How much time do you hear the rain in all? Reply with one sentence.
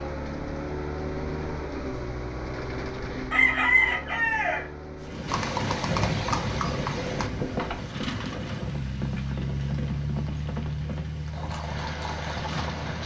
The rain can be heard for 8 seconds in total.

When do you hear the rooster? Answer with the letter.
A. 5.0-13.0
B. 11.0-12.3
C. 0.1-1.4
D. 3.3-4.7
D.